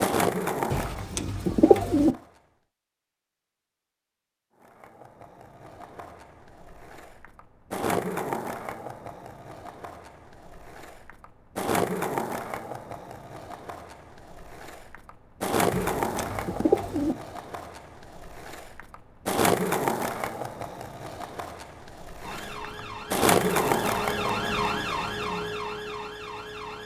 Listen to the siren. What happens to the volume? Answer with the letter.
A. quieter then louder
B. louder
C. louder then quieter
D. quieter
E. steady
C.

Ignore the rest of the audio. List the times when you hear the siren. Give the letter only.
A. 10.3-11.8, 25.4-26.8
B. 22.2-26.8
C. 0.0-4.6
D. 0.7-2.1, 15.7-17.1
B.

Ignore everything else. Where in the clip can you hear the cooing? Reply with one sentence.
The cooing can be heard from 0.7 to 2.1 s and from 15.7 to 17.1 s.